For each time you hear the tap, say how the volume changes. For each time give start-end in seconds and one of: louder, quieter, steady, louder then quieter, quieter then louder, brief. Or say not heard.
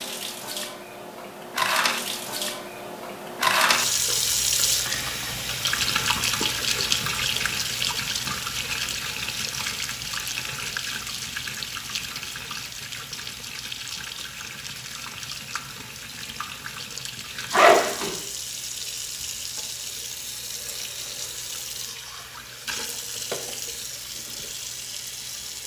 0.0-25.6 quieter.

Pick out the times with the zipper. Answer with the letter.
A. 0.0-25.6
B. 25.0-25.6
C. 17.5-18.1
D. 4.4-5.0
C.